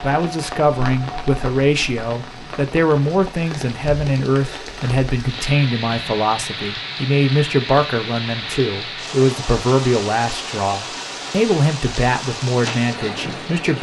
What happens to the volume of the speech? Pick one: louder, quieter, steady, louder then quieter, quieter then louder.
steady.